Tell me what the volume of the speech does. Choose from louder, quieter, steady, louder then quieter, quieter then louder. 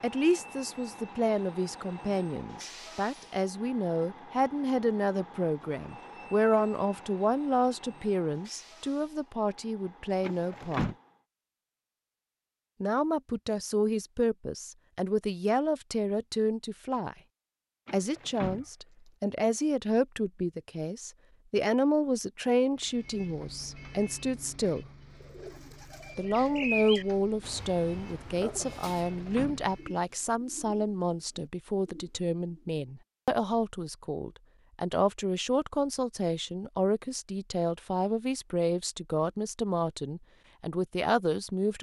steady.